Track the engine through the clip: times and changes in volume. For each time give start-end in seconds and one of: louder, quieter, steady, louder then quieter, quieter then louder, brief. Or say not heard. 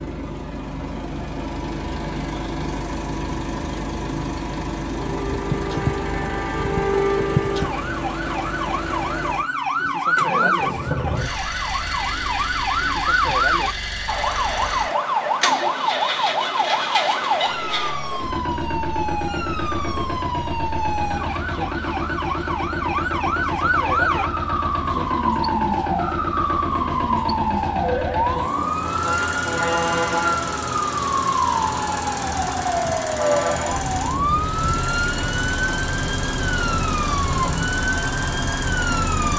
0.0-39.3 steady.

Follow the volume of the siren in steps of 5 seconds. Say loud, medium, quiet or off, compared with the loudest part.
off, loud, loud, loud, loud, loud, loud, loud.